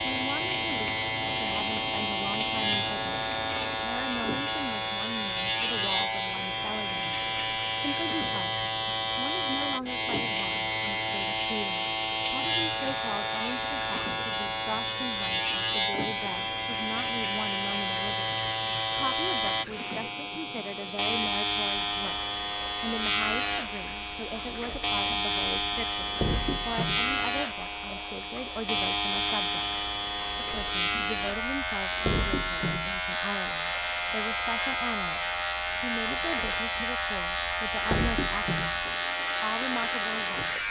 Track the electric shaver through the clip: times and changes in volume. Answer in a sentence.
You can hear the electric shaver from 0.0 to 40.6 s, at a steady volume.